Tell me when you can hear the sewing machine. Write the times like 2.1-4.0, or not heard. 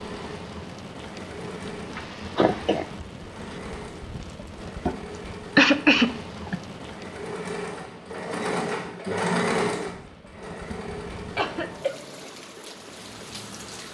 0.0-12.3.